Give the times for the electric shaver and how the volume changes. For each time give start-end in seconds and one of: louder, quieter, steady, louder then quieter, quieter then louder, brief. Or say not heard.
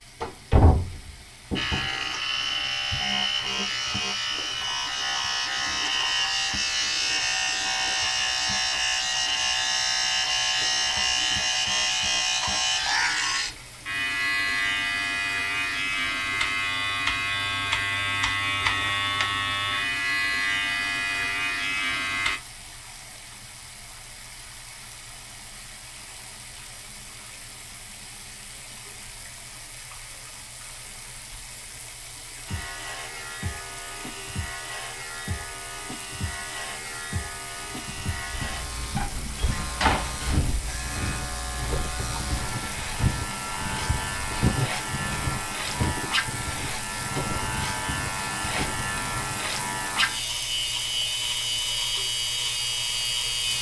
1.6-22.4 steady
32.5-53.5 louder.